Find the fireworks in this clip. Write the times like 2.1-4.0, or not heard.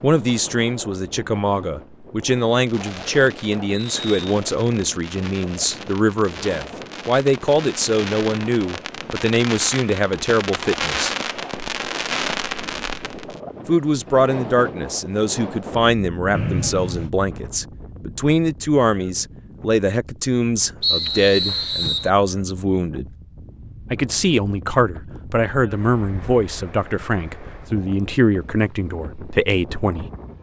2.5-13.4.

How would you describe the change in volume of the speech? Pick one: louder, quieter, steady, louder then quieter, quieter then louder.
steady.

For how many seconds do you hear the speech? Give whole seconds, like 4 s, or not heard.
27 s.